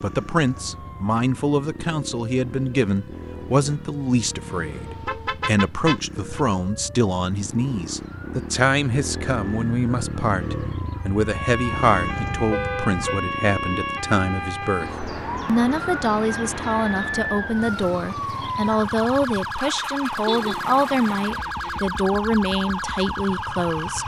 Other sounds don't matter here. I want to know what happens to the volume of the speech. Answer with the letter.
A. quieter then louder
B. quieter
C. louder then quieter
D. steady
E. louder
D.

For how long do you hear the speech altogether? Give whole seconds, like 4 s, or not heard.
24 s.